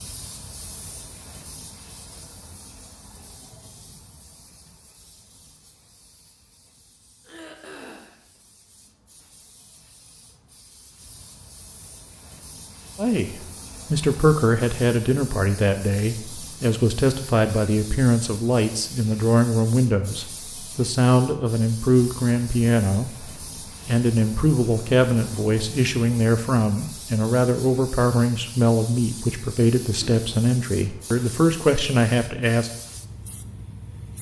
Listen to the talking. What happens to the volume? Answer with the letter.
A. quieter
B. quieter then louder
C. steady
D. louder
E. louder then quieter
C.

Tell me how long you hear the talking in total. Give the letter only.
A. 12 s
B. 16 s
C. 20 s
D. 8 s
C.